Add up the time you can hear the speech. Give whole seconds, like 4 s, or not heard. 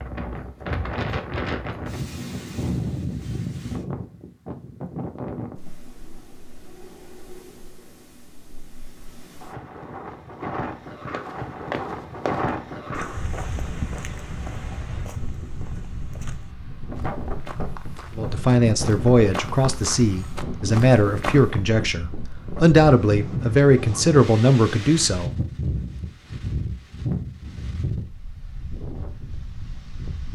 7 s.